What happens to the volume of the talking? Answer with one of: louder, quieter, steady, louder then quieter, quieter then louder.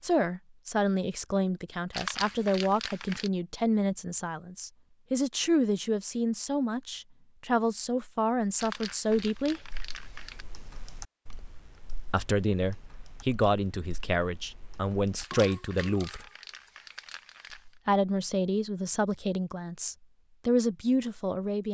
steady.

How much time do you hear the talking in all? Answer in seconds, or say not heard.
18 s.